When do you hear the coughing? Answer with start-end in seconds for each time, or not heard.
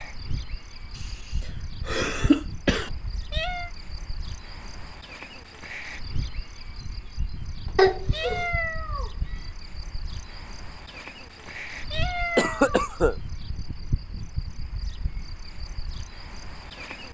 1.9-2.9, 7.8-8.4, 12.3-13.2.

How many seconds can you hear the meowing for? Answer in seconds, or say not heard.
4 s.